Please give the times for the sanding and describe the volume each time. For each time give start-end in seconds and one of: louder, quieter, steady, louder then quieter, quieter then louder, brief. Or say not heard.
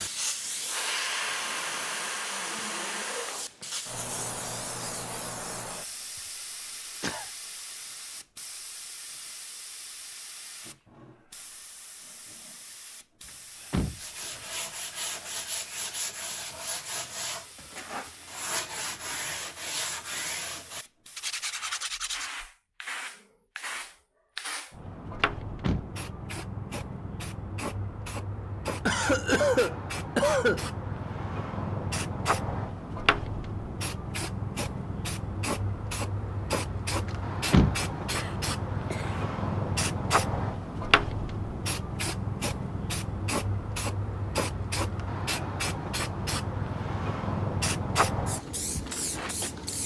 13.9-22.4 steady.